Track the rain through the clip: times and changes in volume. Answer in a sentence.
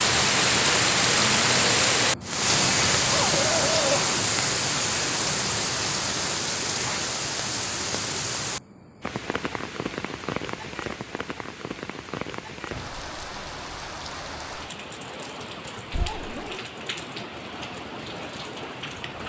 The rain can be heard from 0.0 to 19.2 s, getting quieter.